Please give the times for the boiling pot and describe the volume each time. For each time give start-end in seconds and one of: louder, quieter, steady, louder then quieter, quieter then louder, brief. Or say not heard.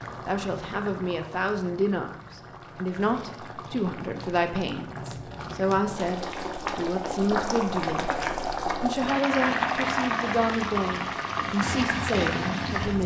0.0-13.0 louder.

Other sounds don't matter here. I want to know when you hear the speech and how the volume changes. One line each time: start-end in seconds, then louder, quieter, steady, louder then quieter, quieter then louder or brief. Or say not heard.
0.2-8.1 steady
8.8-13.0 steady.